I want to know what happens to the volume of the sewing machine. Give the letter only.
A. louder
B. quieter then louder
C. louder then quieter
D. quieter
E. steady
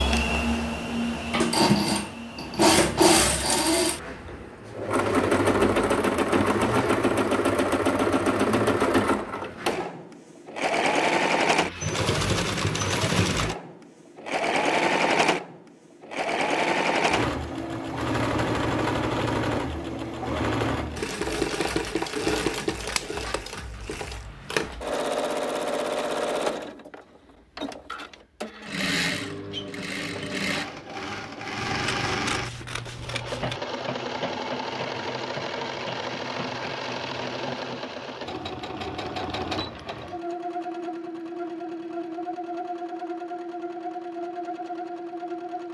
D.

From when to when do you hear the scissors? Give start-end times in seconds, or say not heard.
31.6-33.6.